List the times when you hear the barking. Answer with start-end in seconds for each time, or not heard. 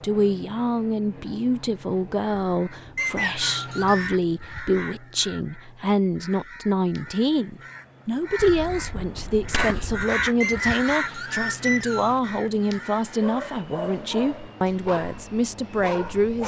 13.2-16.4.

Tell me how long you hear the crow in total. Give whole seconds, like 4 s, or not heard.
11 s.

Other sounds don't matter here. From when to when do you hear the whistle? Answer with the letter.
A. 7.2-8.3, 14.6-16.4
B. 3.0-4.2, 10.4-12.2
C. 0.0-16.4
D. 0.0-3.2
B.